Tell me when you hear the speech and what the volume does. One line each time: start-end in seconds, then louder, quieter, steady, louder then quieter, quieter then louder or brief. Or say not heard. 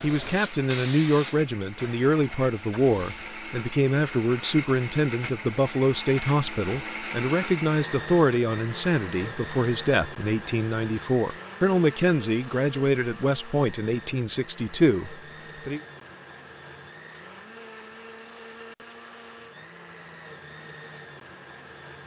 0.0-15.8 steady.